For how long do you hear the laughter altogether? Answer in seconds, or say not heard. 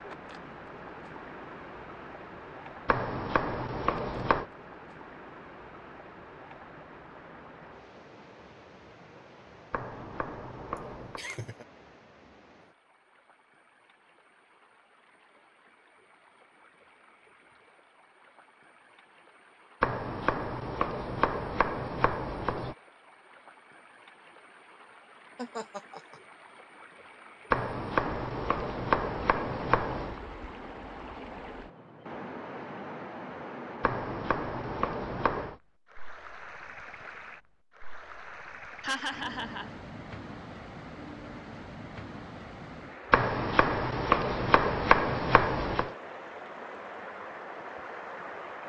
3 s.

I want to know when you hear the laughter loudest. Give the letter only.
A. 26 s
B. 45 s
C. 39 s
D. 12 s
C.